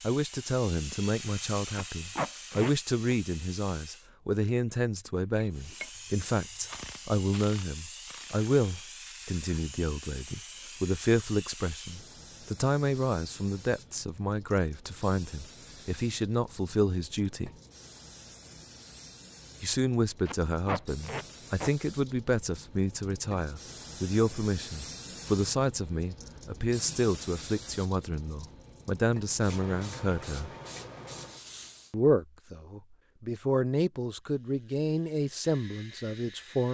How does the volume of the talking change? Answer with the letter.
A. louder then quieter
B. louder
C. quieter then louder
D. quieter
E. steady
E.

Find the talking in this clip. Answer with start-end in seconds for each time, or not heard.
0.0-17.5, 19.6-30.5, 31.9-36.6.